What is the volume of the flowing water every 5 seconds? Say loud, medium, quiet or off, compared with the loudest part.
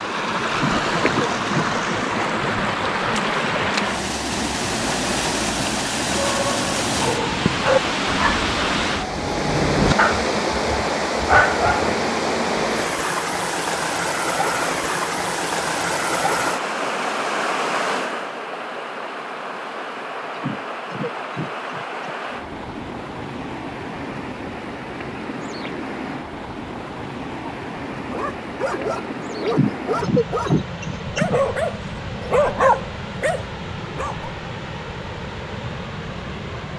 loud, loud, loud, loud, medium, medium, medium, medium.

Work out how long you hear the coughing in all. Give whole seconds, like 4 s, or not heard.
6 s.